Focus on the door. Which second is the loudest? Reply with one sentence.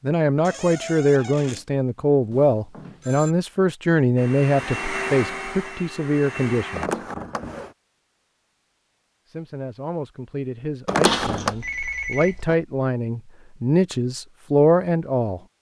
The volume of the door peaks at 11 seconds.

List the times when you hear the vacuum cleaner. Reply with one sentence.
The vacuum cleaner can be heard from 4.2 to 6.9 s.